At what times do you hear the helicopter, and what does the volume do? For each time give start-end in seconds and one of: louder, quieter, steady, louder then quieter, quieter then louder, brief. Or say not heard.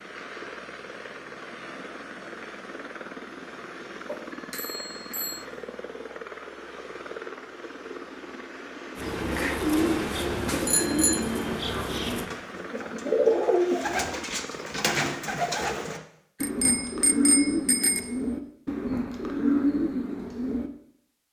0.0-16.1 steady.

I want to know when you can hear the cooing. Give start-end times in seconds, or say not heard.
8.9-20.7.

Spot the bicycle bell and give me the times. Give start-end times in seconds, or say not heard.
4.0-5.5, 10.7-11.2, 16.4-18.0.